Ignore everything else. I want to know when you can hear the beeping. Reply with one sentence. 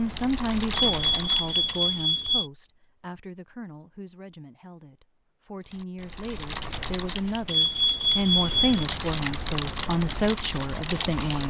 The beeping can be heard from 0.9 to 2.5 s and from 7.5 to 8.8 s.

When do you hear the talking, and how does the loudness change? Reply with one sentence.
The talking can be heard from 0.0 to 11.4 s, getting quieter then louder.